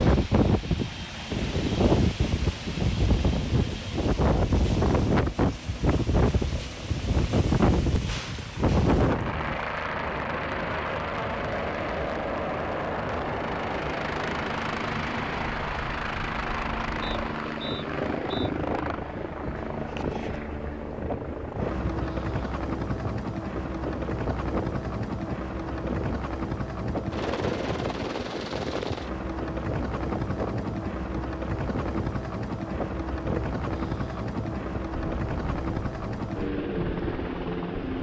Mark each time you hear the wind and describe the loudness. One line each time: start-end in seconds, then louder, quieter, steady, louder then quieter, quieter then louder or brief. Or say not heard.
0.0-37.9 quieter.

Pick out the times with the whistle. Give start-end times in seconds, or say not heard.
17.0-18.5.